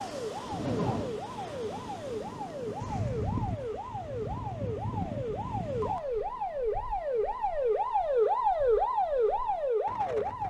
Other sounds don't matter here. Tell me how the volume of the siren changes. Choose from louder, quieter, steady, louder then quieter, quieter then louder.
louder.